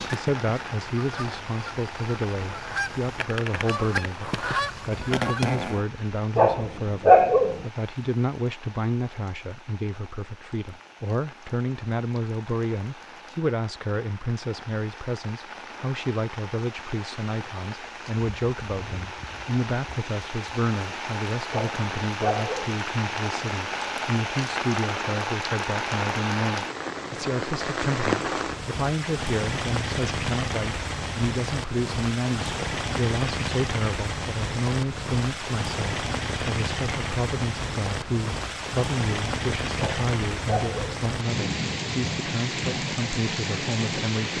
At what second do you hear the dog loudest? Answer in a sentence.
The volume of the dog peaks at 7 seconds.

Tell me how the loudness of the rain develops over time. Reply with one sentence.
The loudness of the rain goes up.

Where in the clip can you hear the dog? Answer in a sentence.
You can hear the dog from 6.3 to 7.6 s, from 21.5 to 22.8 s and from 39.8 to 41.0 s.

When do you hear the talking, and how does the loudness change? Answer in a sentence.
The talking can be heard from 0.0 to 44.3 s, at a steady volume.